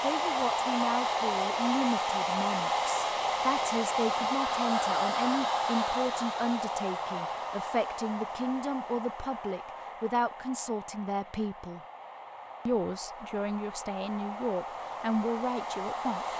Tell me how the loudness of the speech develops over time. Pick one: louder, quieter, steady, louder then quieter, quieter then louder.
steady.